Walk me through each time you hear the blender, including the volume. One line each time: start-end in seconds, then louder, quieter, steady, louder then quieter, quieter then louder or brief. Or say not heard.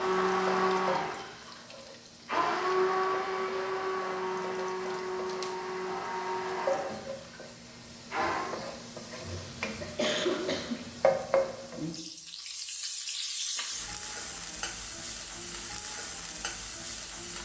0.0-8.6 quieter.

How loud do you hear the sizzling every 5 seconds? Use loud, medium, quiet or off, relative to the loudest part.
medium, medium, loud, medium.